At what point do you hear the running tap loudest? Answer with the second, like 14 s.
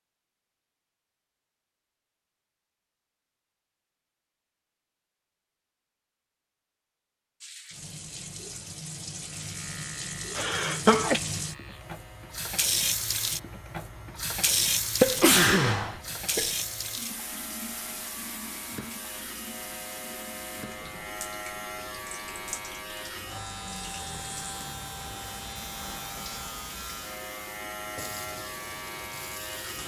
15 s.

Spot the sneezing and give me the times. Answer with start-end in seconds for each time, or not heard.
10.3-11.2, 15.0-16.5.